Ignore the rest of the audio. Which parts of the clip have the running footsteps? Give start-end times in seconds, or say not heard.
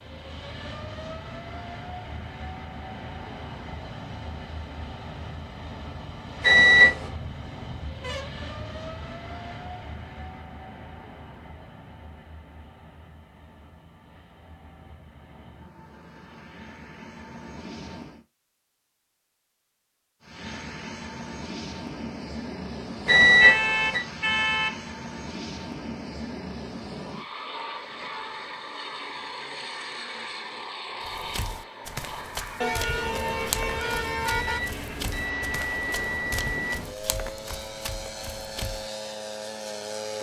31.0-38.9.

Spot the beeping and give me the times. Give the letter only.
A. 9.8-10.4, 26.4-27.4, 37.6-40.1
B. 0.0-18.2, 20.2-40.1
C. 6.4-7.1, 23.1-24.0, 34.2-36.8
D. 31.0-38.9
C.